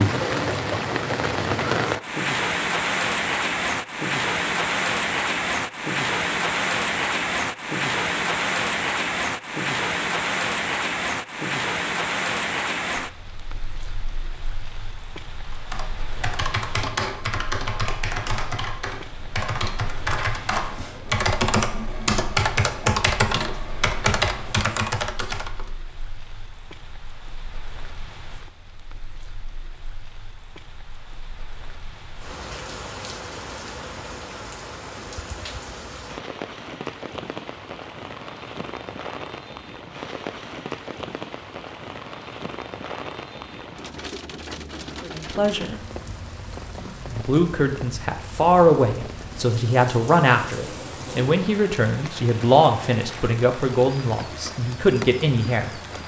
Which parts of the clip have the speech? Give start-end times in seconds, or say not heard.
45.0-45.8, 47.0-55.7.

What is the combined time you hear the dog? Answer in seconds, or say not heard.
not heard.